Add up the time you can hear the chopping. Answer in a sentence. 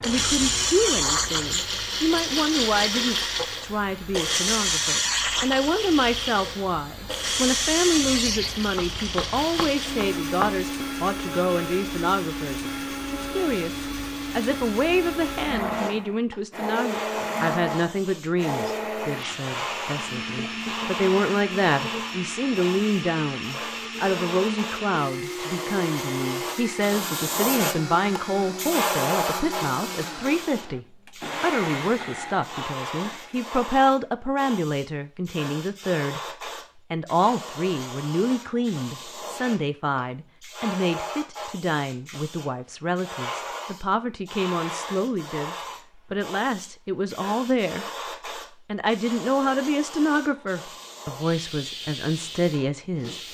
The chopping can be heard for 2 seconds in total.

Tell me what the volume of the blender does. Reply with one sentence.
The volume of the blender goes down.